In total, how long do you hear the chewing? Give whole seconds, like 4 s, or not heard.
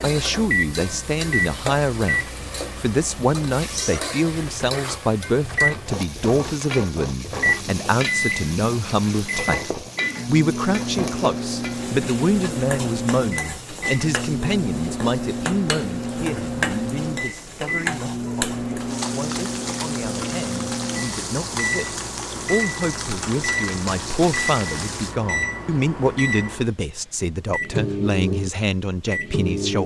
not heard.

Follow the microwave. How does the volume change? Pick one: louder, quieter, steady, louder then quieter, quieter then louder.
steady.